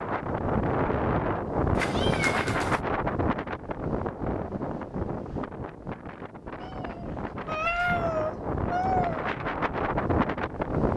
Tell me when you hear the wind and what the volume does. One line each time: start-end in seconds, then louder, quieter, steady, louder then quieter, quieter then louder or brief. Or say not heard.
0.0-10.9 quieter then louder.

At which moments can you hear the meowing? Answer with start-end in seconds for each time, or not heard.
1.8-2.8, 6.6-9.3.